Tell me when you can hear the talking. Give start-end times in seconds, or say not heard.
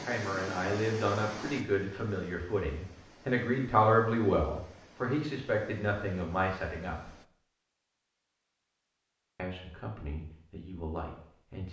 0.0-7.2, 9.3-11.6.